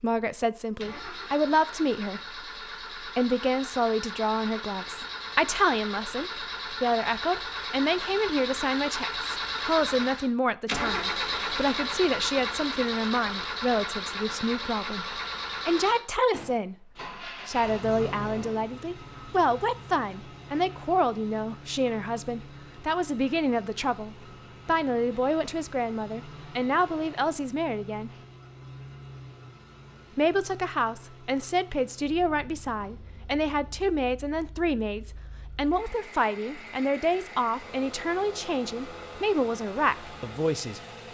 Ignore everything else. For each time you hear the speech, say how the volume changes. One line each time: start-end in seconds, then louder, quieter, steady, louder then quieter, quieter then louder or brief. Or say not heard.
0.0-2.4 brief
3.0-28.1 steady
30.1-41.1 steady.